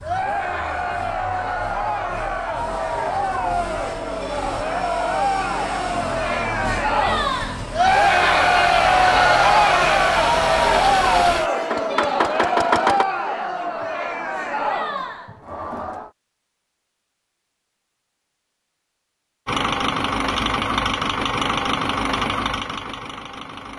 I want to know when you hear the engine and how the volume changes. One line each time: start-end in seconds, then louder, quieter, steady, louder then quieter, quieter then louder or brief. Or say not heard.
0.0-13.1 louder
19.4-23.7 quieter.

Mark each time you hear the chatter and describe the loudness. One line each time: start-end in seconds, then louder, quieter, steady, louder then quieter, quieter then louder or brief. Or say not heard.
0.0-16.1 louder then quieter.